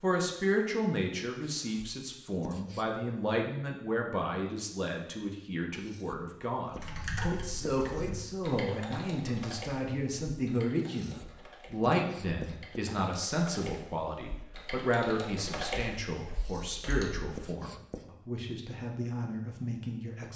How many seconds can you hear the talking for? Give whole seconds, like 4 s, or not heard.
20 s.